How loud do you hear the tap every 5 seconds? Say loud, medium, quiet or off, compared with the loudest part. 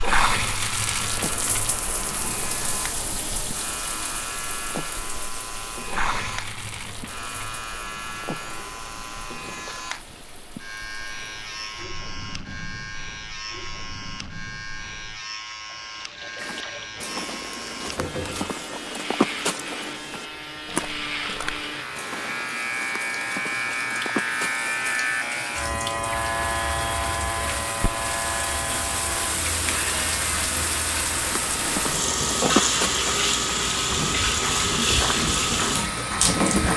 medium, quiet, quiet, quiet, quiet, medium, loud, loud.